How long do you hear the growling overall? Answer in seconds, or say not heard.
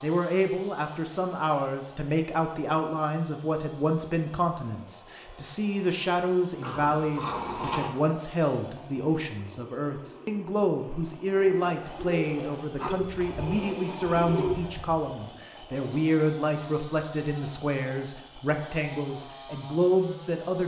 3 s.